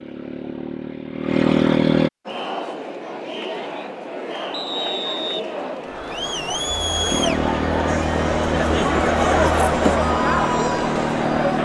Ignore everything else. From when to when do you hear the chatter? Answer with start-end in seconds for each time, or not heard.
2.2-11.6.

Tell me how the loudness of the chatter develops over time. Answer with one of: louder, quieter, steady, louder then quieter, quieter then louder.
louder.